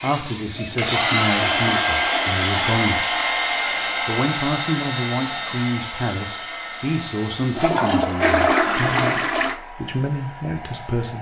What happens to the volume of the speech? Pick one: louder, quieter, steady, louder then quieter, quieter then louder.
steady.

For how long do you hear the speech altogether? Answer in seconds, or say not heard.
10 s.